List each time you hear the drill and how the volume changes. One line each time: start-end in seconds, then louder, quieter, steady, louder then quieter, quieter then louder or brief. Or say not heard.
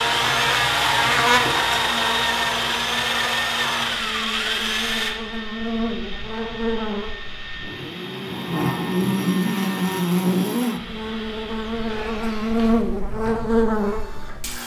0.0-14.6 quieter.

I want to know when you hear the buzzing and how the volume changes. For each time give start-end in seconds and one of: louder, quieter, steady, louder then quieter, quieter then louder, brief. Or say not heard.
0.0-14.6 quieter then louder.